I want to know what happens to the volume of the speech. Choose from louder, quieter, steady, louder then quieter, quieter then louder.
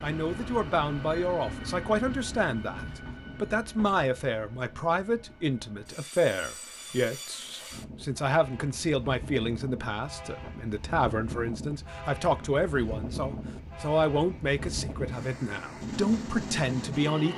steady.